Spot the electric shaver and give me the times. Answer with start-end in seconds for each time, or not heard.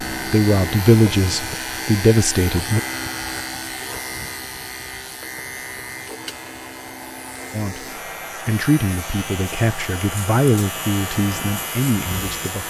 0.0-12.6.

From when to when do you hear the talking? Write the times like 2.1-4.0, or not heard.
0.3-2.8, 7.5-12.6.